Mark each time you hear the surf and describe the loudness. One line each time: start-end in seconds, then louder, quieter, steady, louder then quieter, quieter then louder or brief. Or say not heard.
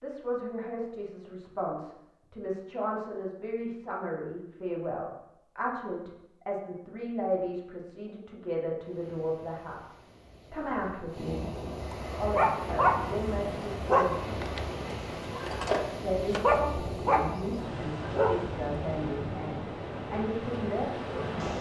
8.8-21.5 louder.